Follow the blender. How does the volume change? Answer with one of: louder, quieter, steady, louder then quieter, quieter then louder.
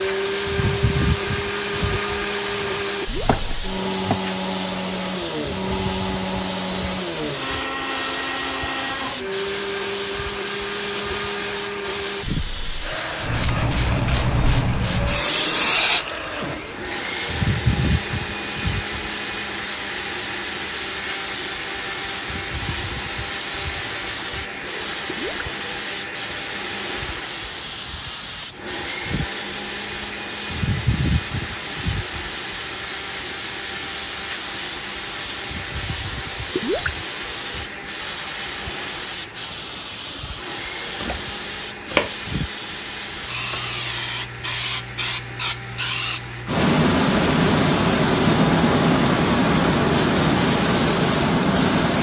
quieter.